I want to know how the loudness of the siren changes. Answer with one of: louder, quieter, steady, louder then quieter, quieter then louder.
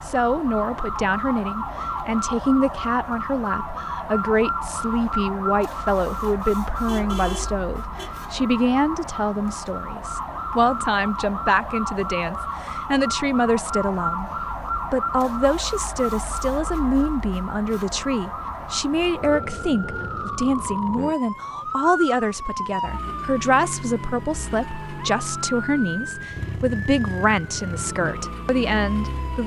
steady.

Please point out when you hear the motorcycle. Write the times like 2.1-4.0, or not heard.
not heard.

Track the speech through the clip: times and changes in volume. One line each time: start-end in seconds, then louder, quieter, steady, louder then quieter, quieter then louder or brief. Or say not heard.
0.0-14.3 steady
14.9-29.4 steady.